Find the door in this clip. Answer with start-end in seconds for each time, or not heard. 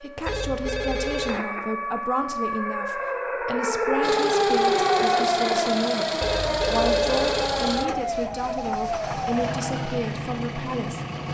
not heard.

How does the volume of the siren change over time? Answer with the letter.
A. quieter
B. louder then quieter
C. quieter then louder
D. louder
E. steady
B.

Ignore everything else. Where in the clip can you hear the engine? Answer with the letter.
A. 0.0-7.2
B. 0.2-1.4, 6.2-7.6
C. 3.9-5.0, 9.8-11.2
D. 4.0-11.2
D.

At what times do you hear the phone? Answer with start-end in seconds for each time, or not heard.
0.2-1.4, 6.2-7.6.